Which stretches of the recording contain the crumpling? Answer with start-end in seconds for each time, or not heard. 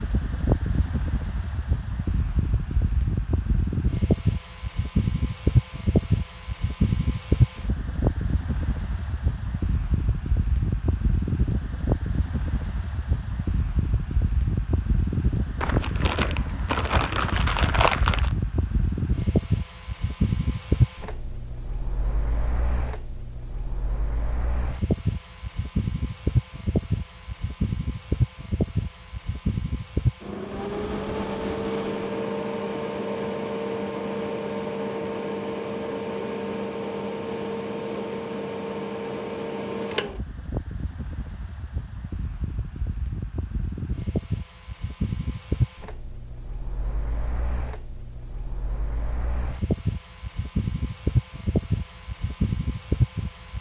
15.6-18.3.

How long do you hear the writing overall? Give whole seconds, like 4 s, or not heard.
not heard.